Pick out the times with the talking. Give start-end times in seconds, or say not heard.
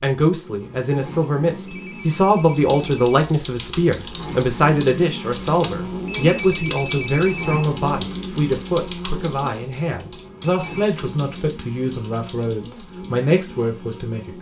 0.0-14.3.